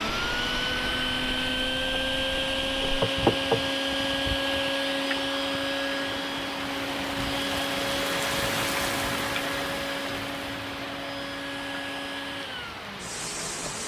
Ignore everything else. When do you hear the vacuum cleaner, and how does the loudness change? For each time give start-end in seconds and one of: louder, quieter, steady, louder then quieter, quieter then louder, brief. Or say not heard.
0.0-13.8 quieter.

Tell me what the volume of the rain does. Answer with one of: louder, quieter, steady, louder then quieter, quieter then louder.
louder then quieter.